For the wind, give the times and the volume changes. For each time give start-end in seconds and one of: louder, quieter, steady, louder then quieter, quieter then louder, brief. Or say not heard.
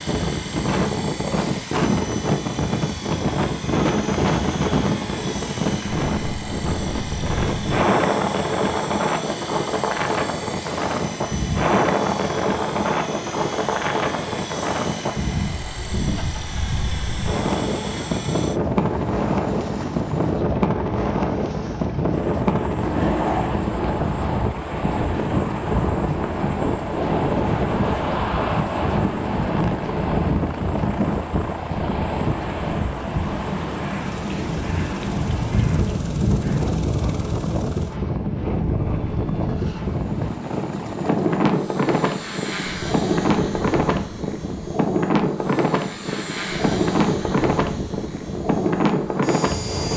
0.0-49.9 steady.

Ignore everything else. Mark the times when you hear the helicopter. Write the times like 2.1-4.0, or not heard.
0.0-49.9.